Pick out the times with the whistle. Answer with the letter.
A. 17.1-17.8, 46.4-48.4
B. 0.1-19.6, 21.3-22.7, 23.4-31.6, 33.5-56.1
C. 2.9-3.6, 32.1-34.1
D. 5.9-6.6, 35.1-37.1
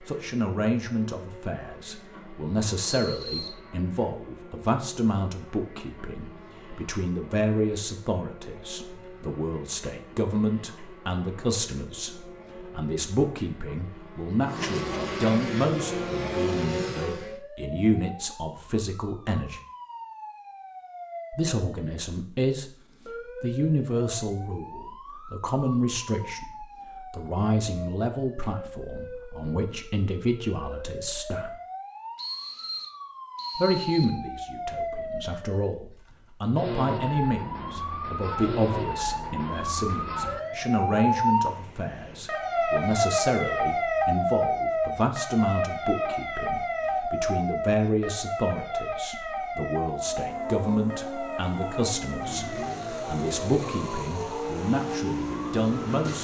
C.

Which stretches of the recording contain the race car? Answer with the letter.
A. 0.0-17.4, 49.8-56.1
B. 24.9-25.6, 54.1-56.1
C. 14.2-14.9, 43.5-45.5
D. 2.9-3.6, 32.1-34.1
A.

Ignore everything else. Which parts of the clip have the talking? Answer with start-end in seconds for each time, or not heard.
0.1-19.6, 21.3-22.7, 23.4-31.6, 33.5-56.1.